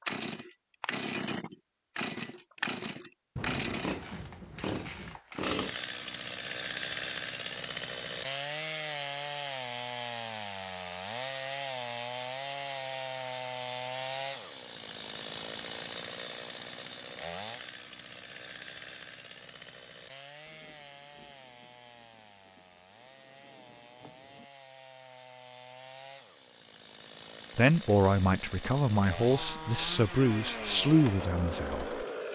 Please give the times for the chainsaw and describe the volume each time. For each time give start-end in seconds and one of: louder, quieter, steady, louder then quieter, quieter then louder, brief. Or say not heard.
0.0-32.2 quieter then louder.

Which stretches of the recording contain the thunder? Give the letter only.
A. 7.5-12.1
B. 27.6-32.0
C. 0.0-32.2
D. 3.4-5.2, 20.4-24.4
D.